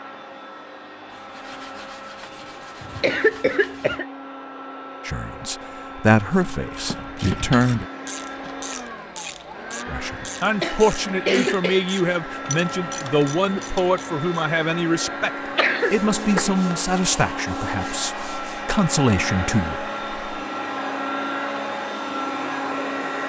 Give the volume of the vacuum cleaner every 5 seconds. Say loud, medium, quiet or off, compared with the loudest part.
medium, medium, medium, loud, loud.